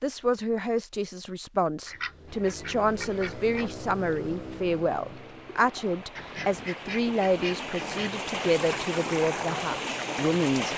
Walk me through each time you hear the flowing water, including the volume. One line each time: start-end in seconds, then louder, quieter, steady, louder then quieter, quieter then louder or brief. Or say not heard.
2.2-10.7 louder.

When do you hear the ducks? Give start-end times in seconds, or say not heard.
1.9-3.7, 6.2-8.2.